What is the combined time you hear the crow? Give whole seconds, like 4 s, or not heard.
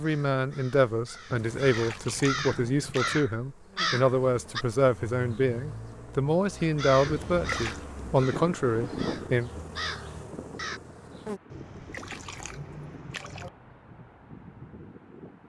9 s.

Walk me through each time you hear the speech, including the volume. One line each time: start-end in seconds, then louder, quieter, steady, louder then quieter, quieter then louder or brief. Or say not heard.
0.0-9.5 steady.